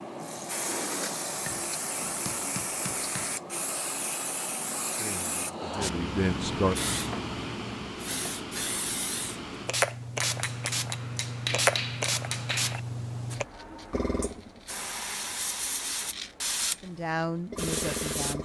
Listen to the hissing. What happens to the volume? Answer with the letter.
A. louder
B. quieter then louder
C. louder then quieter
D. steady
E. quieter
D.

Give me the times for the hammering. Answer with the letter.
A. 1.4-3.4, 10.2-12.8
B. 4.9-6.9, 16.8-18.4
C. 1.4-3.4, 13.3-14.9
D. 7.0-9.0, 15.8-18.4
A.